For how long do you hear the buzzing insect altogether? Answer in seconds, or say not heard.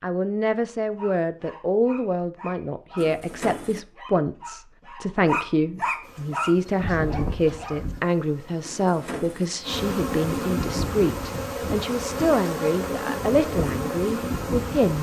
9 s.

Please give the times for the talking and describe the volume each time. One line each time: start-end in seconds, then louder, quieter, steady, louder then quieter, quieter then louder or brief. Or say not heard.
0.0-14.9 steady.